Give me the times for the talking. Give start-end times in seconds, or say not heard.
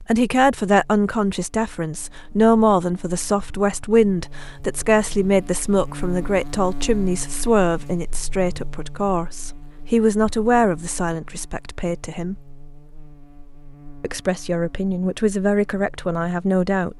0.1-12.4, 14.0-16.9.